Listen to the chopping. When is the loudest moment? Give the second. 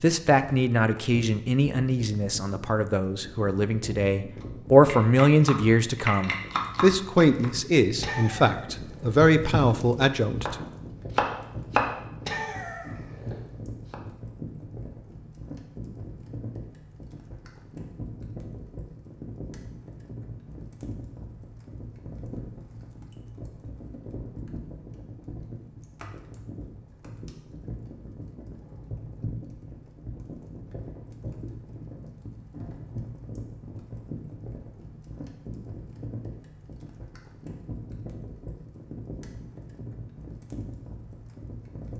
12 s.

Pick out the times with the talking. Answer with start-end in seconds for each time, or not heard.
0.0-10.6.